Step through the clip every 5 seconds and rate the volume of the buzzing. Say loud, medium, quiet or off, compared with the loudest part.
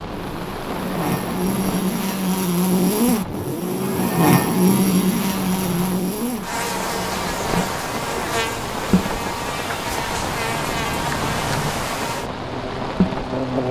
loud, medium, medium.